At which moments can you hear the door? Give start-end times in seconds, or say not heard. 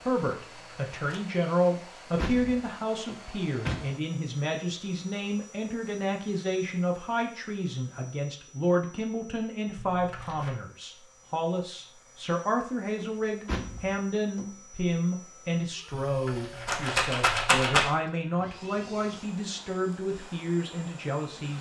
1.7-3.9, 13.0-14.5.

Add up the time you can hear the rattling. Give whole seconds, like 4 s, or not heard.
3 s.